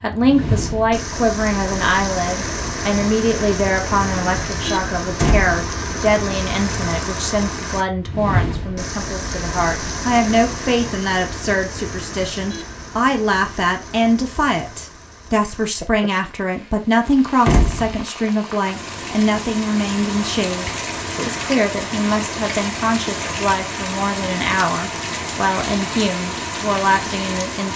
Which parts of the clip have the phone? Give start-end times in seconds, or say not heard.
not heard.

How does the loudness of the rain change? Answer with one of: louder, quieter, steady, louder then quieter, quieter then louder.
quieter then louder.